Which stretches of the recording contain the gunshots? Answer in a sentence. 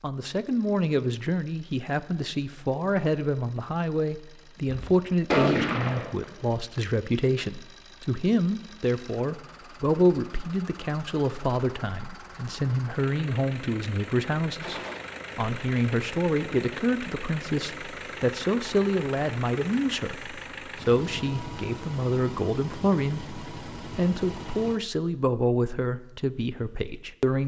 You can hear the gunshots from 4.7 to 6.5 s and from 14.6 to 15.0 s.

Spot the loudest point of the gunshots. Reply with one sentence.
The volume of the gunshots peaks at 5 seconds.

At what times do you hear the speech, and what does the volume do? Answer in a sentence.
The speech can be heard from 0.0 to 27.4 s, at a steady volume.